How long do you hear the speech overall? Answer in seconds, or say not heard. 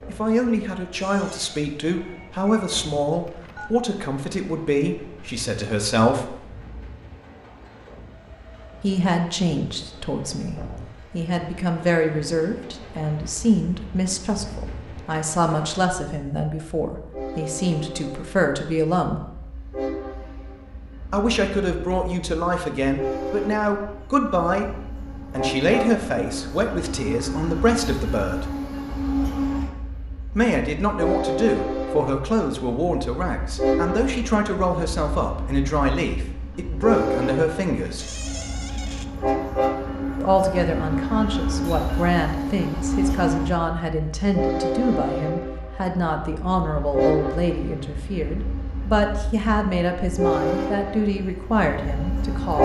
44 s.